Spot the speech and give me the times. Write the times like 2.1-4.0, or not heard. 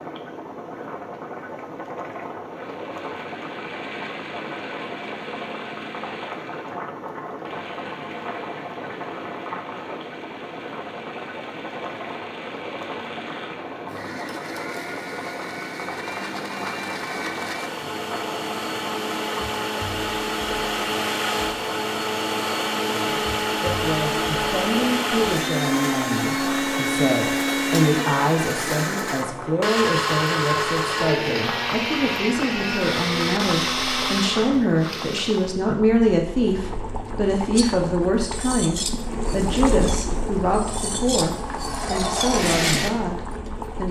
23.0-43.8.